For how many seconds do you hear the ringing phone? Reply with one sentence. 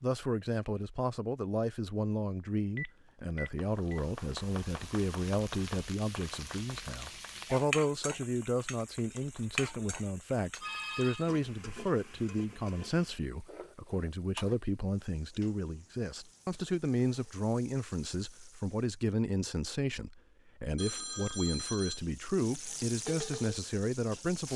The ringing phone can be heard for 3 seconds in total.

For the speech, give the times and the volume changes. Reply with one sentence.
You can hear the speech from 0.0 to 24.5 s, at a steady volume.